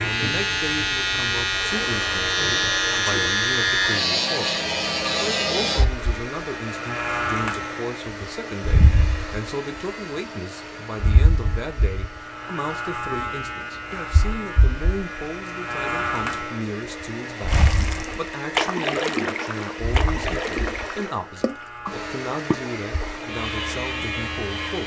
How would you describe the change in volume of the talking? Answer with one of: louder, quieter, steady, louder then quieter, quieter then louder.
steady.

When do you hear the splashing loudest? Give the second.
19 s.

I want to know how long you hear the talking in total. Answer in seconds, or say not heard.
25 s.